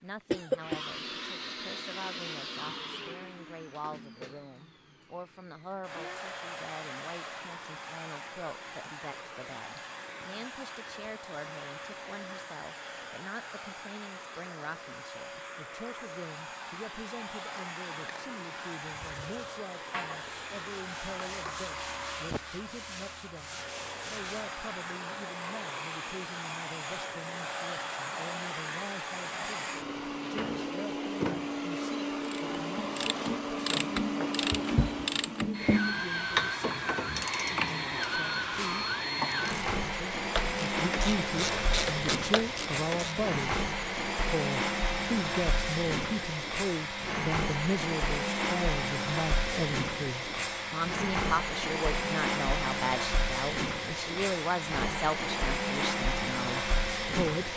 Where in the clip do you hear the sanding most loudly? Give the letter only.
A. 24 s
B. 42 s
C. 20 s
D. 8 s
C.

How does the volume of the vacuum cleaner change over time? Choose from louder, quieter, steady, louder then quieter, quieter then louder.
louder.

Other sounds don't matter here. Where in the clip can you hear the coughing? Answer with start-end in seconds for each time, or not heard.
0.3-0.8.